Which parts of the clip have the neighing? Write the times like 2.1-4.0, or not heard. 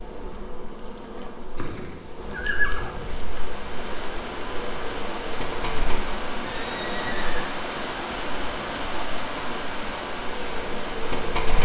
1.6-3.4, 6.5-7.5.